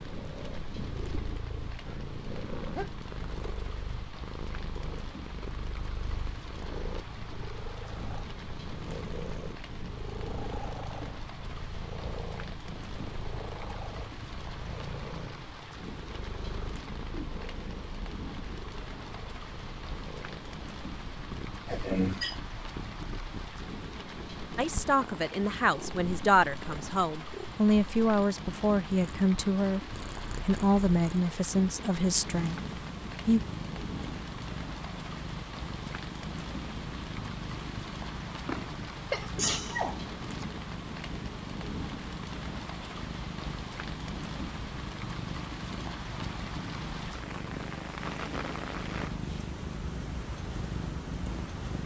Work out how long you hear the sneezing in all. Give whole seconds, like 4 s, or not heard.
4 s.